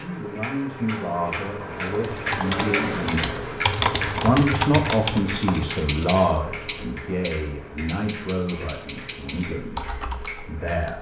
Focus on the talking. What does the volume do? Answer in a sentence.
The volume of the talking goes up, then down.